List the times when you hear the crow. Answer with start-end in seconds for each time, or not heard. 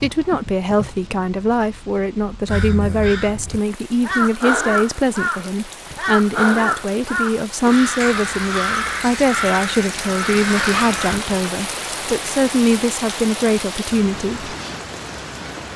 2.5-11.2.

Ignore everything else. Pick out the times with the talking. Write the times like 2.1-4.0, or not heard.
0.0-14.6.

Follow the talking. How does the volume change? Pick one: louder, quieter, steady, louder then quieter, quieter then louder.
steady.